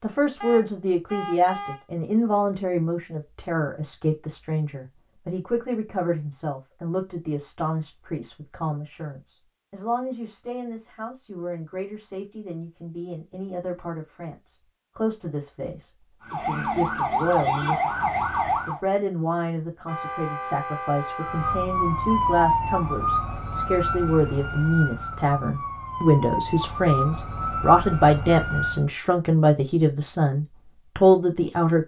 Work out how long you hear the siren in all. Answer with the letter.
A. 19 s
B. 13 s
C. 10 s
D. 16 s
C.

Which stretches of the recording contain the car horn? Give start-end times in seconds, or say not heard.
0.4-1.9, 19.9-21.6.